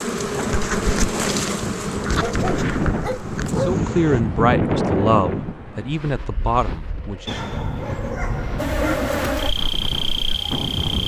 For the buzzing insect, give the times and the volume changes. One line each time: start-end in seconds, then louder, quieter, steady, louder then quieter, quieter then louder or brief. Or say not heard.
0.0-4.2 quieter
8.6-11.0 brief.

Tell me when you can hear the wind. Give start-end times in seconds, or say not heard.
0.0-11.0.